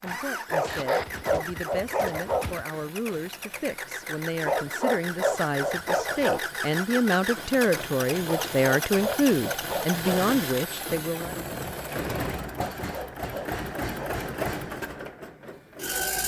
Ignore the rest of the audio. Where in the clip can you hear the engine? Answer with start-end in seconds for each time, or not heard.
0.0-16.2.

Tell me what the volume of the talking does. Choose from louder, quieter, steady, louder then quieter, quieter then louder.
louder.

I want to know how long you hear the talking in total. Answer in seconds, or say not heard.
11 s.